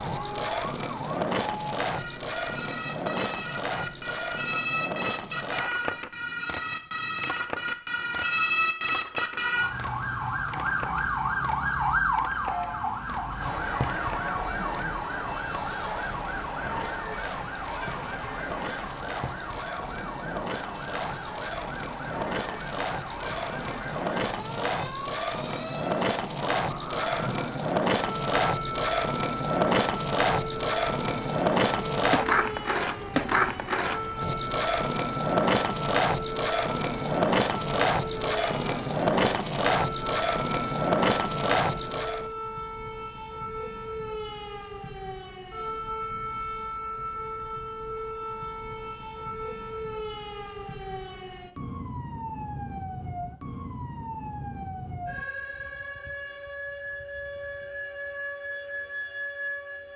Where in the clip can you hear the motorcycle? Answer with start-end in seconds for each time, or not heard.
not heard.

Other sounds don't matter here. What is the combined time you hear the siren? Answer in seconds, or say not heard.
60 s.